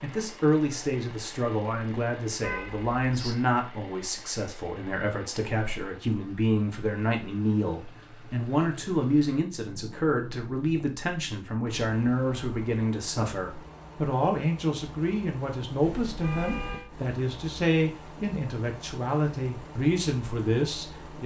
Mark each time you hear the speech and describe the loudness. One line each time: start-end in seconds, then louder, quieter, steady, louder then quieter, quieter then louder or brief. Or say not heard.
0.0-21.2 steady.